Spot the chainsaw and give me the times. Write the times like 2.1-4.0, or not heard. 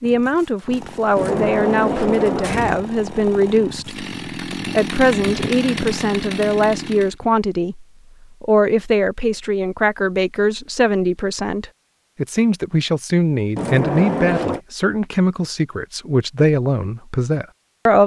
0.0-7.2.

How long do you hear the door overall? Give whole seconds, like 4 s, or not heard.
3 s.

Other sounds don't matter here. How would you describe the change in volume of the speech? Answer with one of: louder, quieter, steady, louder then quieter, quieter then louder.
steady.